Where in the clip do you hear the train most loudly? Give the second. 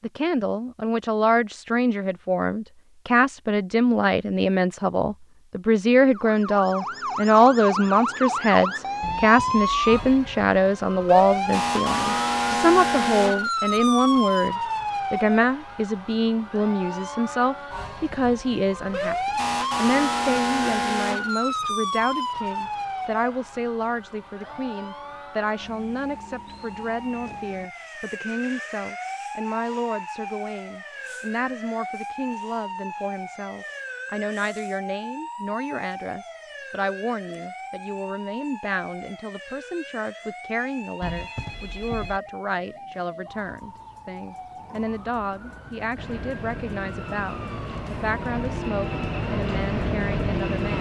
50 s.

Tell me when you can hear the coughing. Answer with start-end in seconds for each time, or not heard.
not heard.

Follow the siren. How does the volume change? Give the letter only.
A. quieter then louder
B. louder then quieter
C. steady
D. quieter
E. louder
D.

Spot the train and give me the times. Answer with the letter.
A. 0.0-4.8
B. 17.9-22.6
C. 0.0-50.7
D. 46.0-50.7
D.